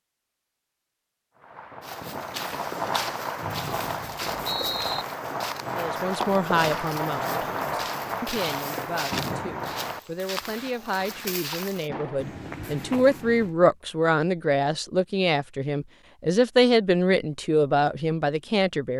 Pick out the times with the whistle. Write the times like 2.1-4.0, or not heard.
3.4-5.0.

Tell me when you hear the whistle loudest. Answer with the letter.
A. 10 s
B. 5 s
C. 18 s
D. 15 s
B.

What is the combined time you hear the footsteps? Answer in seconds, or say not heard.
12 s.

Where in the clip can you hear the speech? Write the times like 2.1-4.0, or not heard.
5.8-18.9.